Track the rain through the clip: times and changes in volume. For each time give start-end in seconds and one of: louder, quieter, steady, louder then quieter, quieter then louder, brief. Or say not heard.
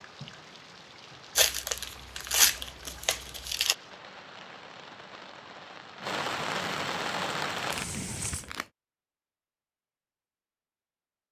0.0-8.5 louder.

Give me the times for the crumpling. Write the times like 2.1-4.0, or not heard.
1.4-3.8, 7.5-8.7.